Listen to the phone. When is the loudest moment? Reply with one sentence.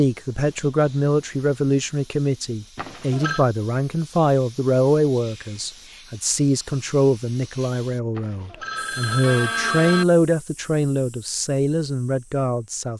The volume of the phone peaks at 10 seconds.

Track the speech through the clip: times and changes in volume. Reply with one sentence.
The speech can be heard from 0.0 to 12.9 s, at a steady volume.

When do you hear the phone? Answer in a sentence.
The phone can be heard from 2.8 to 3.5 s and from 8.2 to 10.1 s.